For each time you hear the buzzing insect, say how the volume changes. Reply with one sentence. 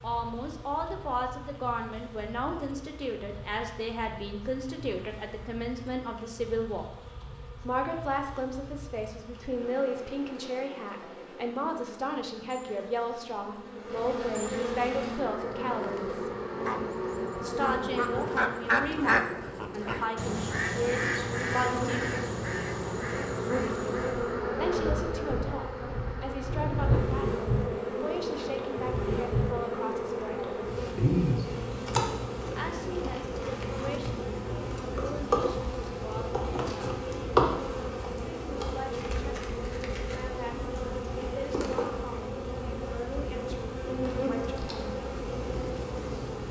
You can hear the buzzing insect from 0.0 to 46.4 s, getting louder.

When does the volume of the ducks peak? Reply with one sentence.
The loudest moment of the ducks is at 19 seconds.